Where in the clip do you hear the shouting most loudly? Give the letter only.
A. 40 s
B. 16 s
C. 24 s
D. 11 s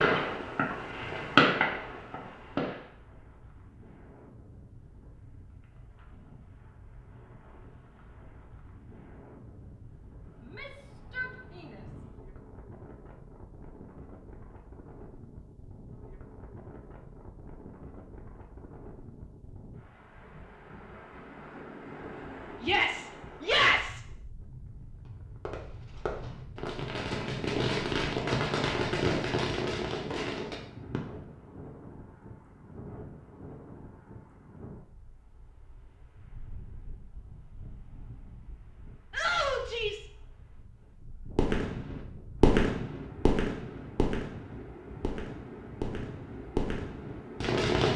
C.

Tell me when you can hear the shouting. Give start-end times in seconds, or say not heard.
10.4-12.0, 22.6-24.0, 39.1-40.0.